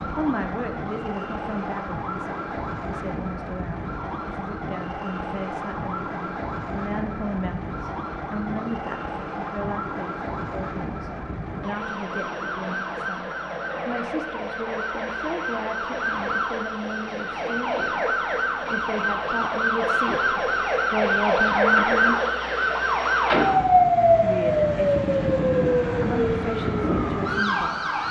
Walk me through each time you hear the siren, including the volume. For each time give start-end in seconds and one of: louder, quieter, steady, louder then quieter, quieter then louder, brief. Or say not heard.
0.0-28.0 louder.